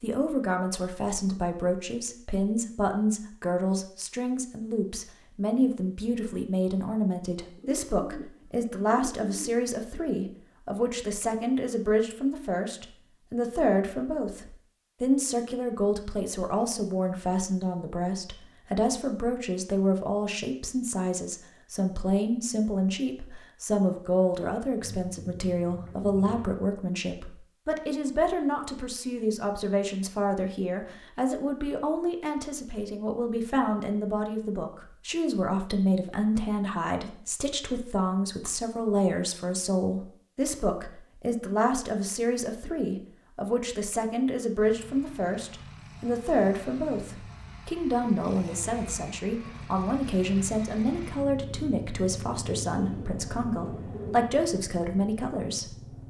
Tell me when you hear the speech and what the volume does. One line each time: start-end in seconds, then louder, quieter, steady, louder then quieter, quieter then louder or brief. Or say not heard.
0.0-55.8 steady.